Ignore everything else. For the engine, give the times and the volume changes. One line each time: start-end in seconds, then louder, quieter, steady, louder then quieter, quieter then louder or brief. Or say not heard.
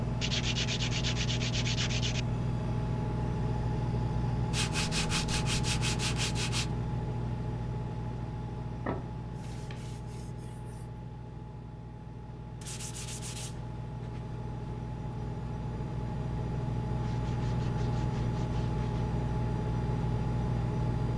0.0-21.1 quieter then louder.